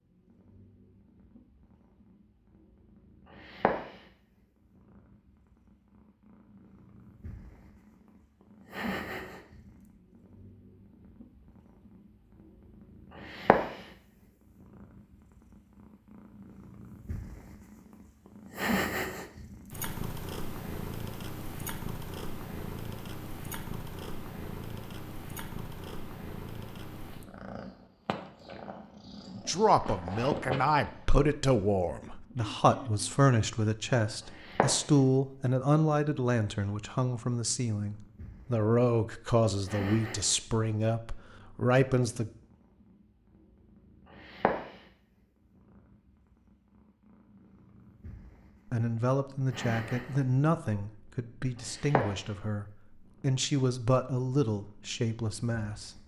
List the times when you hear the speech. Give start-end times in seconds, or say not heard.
29.4-42.3, 48.7-55.9.